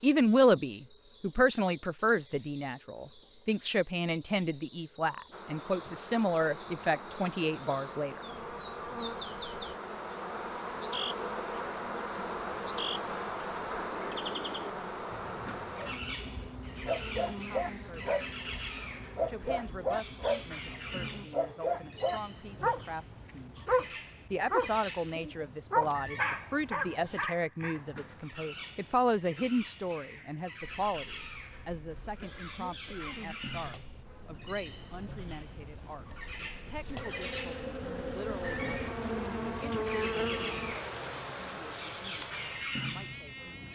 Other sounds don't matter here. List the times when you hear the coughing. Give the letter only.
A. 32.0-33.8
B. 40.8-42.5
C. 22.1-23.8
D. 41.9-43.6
A.